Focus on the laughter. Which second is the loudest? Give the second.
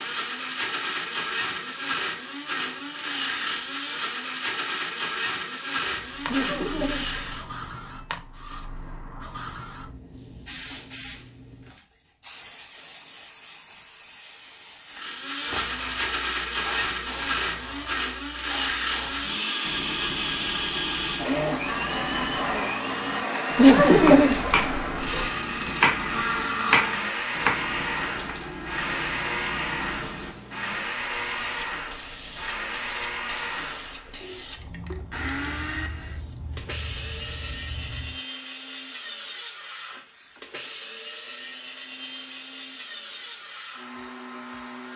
24 s.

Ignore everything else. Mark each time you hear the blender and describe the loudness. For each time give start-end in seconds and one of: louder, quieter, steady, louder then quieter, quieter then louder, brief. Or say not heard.
0.0-7.5 steady
14.9-44.9 quieter.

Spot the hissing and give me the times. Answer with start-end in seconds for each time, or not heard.
6.0-44.9.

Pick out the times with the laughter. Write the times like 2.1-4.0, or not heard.
6.2-7.2, 23.6-25.3.